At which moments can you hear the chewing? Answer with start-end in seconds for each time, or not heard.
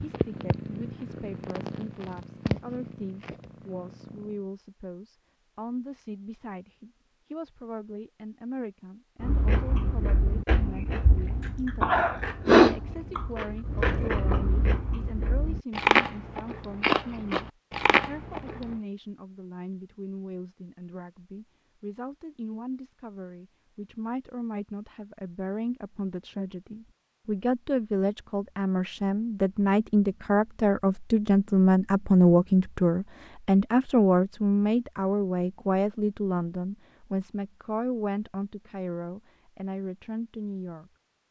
9.2-18.6.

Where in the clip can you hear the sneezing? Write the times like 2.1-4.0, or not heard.
not heard.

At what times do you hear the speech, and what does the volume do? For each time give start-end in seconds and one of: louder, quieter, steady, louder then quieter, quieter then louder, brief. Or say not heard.
0.0-12.0 steady
12.6-41.2 louder then quieter.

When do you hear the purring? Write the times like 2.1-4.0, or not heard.
0.0-4.4.